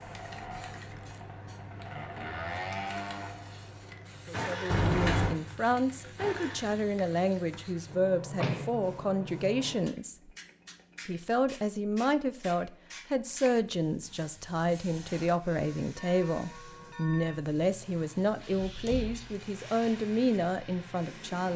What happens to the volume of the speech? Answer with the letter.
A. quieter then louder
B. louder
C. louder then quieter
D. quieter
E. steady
E.